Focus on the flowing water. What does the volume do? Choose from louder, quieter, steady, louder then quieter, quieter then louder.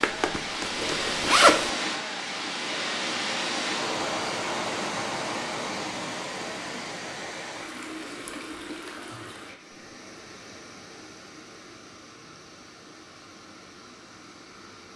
quieter.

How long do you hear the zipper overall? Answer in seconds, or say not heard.
2 s.